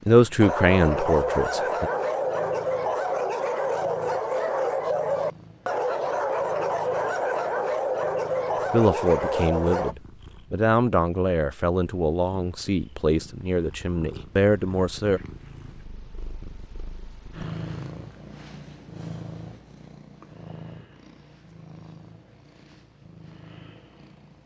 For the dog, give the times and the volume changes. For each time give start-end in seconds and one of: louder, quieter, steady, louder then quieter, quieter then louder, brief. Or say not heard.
0.4-9.9 steady.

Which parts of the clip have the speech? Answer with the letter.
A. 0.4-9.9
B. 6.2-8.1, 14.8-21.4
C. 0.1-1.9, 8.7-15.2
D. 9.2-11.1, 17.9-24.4
C.